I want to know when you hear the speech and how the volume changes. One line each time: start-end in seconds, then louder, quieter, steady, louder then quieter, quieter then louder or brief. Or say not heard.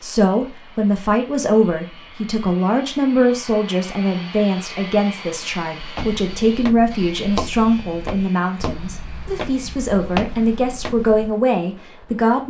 0.0-12.4 steady.